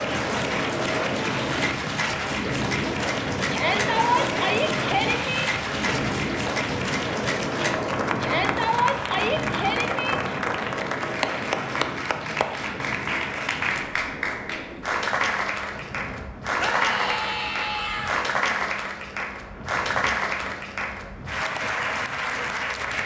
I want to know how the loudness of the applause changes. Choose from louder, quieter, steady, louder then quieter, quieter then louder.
steady.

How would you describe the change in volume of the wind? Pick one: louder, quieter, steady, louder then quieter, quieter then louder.
quieter.